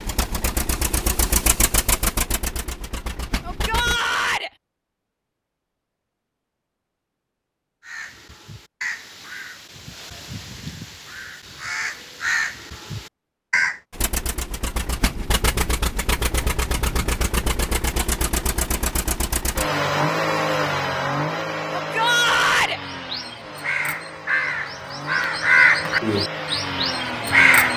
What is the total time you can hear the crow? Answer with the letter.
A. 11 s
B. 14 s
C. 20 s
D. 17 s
A.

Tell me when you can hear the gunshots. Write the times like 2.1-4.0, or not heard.
not heard.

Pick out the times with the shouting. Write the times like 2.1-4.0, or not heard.
3.4-4.5, 21.8-22.8.